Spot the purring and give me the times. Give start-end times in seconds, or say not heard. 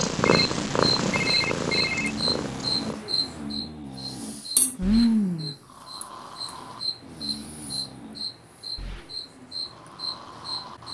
0.0-3.0.